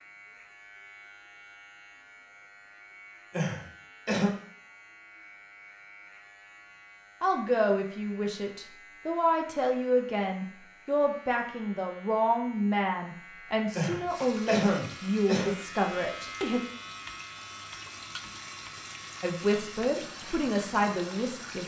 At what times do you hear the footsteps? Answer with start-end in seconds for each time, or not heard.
not heard.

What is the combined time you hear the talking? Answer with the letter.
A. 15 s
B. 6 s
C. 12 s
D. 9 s
C.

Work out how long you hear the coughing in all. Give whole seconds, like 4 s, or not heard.
3 s.